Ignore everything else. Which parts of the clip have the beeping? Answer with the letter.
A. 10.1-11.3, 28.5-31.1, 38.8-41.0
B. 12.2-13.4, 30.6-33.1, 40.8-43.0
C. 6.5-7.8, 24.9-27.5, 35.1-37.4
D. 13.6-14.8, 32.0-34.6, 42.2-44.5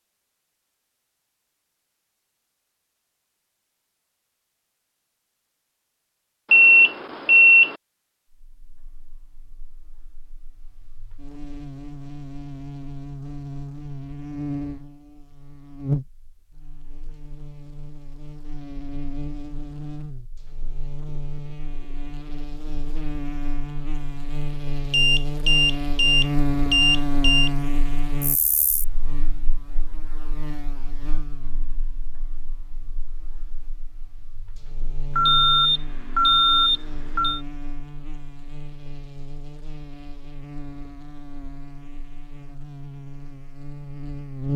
C.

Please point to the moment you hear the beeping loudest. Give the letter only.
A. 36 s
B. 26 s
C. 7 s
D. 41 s
C.